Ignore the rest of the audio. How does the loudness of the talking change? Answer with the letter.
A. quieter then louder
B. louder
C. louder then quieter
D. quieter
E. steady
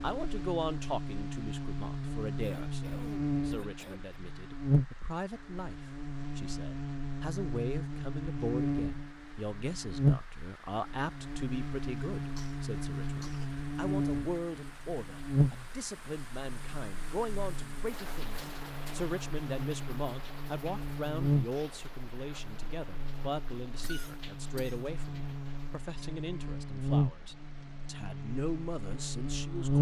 E.